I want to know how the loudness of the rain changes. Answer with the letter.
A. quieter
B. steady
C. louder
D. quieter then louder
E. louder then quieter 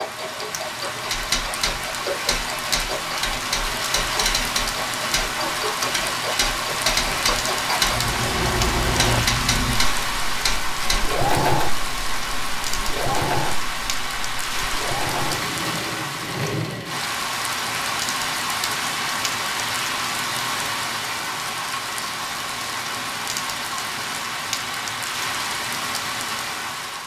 B.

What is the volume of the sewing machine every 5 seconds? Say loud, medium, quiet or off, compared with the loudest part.
medium, loud, loud, loud, off, off.